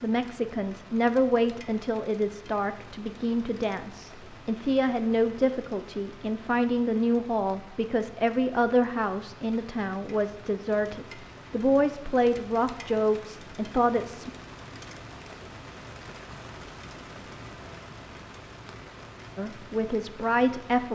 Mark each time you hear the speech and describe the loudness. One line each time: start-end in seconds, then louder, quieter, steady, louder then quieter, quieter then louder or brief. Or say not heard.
0.0-14.3 steady
19.4-20.9 brief.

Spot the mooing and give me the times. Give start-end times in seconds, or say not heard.
not heard.